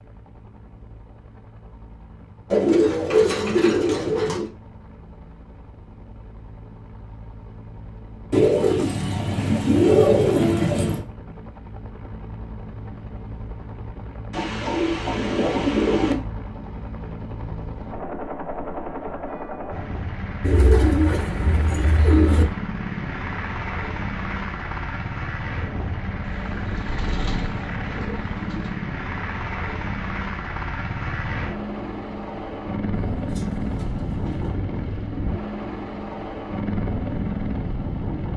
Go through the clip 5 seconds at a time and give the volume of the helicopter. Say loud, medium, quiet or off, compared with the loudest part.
quiet, quiet, medium, medium, loud, loud, loud, loud.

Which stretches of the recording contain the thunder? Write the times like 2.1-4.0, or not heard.
not heard.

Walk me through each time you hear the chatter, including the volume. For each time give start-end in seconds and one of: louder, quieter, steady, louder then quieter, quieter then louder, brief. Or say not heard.
not heard.